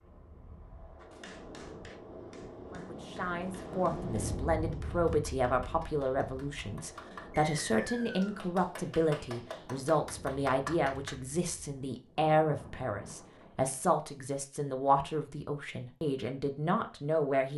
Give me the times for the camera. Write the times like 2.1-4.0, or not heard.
not heard.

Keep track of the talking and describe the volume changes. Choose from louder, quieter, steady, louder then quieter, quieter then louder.
steady.